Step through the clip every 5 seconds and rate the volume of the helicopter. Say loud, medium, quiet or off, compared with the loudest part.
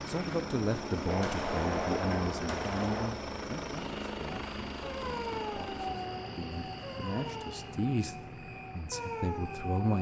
loud, medium.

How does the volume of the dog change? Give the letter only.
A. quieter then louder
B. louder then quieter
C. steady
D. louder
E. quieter
A.